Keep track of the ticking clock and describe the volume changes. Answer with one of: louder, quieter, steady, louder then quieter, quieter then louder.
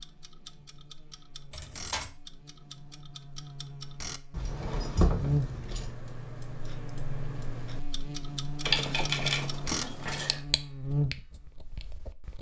louder.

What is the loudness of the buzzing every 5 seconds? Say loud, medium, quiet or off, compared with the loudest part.
quiet, loud, loud.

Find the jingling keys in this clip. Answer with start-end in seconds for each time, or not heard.
1.5-2.1, 4.3-6.0, 8.7-10.3.